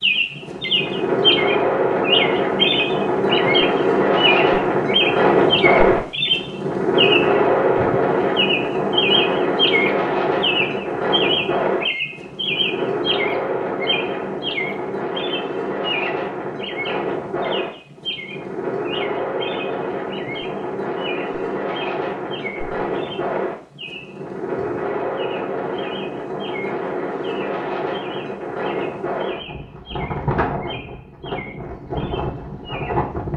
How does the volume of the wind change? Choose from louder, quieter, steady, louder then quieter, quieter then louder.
quieter.